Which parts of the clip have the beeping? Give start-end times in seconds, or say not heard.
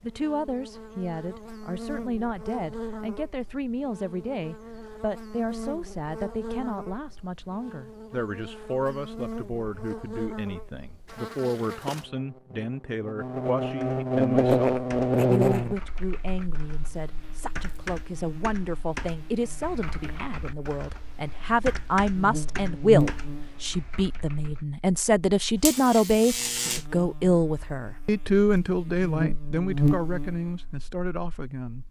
not heard.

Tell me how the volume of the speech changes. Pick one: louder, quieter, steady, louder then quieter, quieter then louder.
louder.